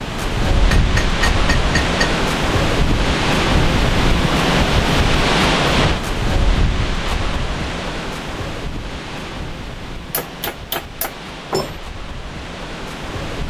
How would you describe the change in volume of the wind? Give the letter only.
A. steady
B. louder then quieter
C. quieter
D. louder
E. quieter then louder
C.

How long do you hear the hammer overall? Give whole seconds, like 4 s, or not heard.
3 s.